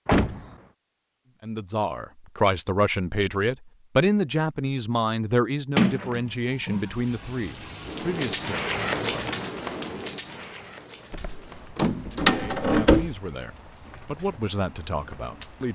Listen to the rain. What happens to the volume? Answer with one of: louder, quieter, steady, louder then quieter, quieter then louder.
louder then quieter.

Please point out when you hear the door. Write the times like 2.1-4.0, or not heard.
0.1-0.6, 5.8-6.9, 11.1-13.1.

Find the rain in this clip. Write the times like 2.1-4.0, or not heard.
6.2-15.7.